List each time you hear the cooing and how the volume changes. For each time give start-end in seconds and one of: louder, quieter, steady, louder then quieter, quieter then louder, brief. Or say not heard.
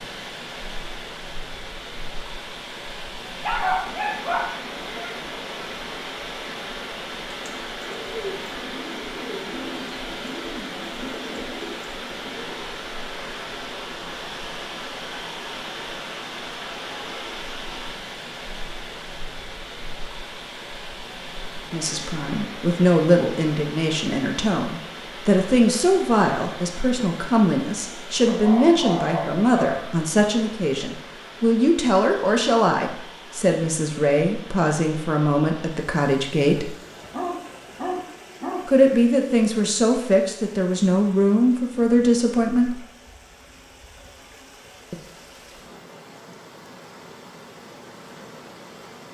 7.3-12.7 steady.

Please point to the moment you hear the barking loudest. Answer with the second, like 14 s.
4 s.